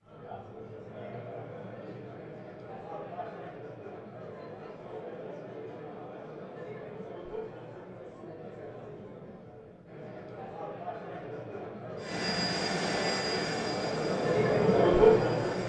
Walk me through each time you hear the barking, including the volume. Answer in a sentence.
You can't hear the barking here.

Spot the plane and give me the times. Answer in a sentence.
You can hear the plane from 11.9 to 15.6 s.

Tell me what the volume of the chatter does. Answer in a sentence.
The volume of the chatter goes up.